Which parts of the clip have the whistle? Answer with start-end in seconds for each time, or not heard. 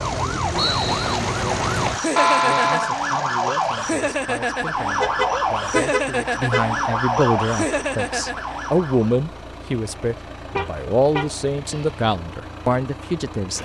0.6-1.1.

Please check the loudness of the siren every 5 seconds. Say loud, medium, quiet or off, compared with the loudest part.
loud, loud, off.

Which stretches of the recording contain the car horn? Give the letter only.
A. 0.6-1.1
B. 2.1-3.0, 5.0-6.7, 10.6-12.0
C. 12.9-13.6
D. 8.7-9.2
B.